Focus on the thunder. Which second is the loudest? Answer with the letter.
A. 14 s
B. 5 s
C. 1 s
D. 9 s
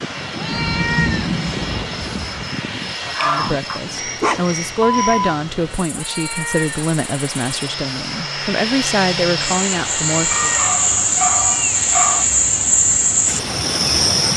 C.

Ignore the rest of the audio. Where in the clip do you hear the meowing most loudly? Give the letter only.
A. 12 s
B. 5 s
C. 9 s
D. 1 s
D.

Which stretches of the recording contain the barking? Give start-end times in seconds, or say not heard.
3.0-5.3, 10.3-12.2.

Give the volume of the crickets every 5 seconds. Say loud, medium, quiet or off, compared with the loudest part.
quiet, medium, loud.